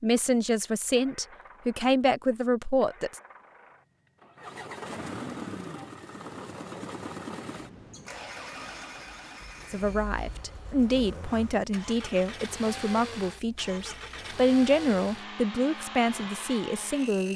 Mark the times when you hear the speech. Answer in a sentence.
The speech can be heard from 0.0 to 3.2 s and from 9.7 to 17.3 s.